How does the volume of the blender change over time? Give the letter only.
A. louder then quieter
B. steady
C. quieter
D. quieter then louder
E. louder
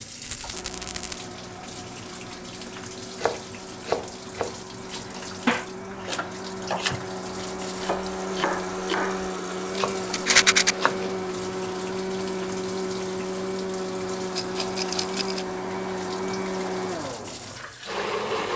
E.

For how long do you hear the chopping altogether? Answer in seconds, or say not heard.
8 s.